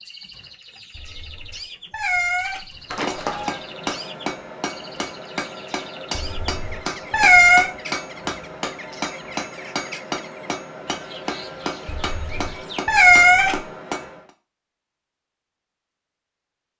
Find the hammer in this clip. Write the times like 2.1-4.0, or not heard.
2.9-14.3.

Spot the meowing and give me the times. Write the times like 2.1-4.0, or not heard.
0.9-3.5, 6.1-7.7, 11.8-13.7.